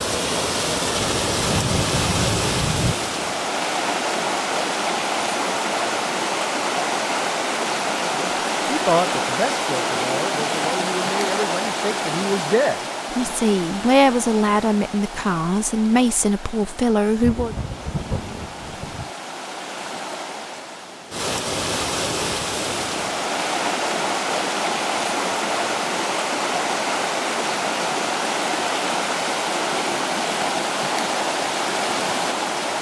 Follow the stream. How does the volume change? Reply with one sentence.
The loudness of the stream goes down, then up.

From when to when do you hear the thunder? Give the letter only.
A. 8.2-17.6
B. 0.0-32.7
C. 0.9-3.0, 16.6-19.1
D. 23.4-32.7
C.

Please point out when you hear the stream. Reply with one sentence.
The stream can be heard from 0.0 to 32.7 s.